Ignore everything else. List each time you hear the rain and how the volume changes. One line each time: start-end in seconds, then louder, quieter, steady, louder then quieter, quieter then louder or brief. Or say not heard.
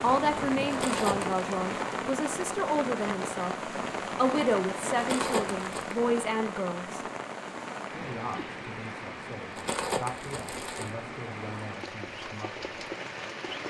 0.0-13.6 quieter.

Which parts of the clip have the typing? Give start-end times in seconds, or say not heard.
not heard.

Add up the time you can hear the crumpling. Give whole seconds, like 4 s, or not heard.
3 s.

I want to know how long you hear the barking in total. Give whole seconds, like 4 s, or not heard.
not heard.